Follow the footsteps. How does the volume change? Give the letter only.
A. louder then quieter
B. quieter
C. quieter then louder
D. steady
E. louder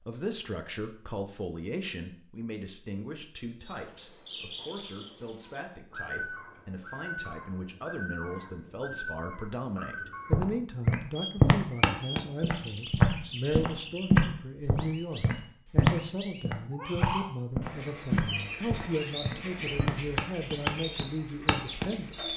B.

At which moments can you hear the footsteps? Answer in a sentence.
The footsteps can be heard from 10.3 to 21.9 s.